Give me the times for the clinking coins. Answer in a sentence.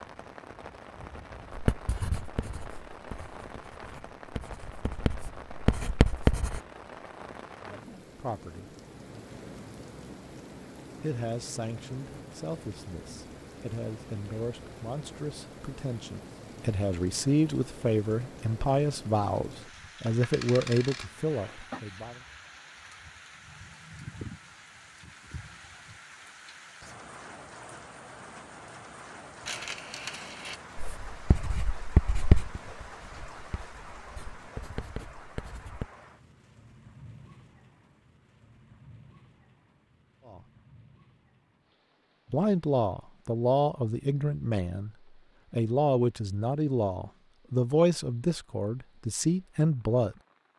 The clinking coins can be heard from 20.2 to 21.6 s and from 29.4 to 30.6 s.